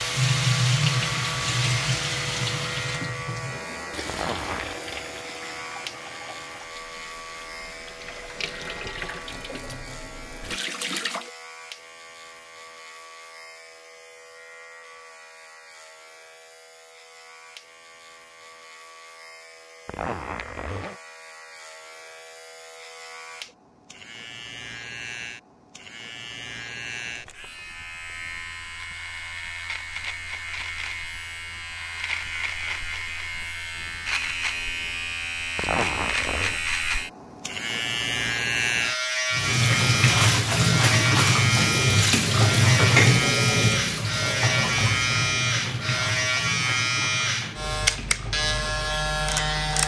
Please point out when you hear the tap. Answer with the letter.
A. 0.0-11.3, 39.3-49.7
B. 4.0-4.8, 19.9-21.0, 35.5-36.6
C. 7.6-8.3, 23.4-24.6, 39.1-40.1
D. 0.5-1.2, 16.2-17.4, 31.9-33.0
A.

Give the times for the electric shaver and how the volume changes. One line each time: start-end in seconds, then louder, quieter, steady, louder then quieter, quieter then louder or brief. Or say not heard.
0.0-49.8 quieter then louder.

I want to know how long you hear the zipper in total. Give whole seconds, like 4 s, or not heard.
3 s.